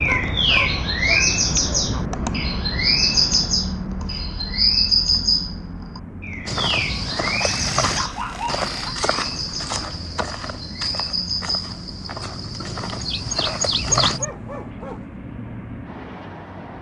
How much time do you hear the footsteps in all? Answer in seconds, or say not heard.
8 s.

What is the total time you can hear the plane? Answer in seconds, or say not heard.
17 s.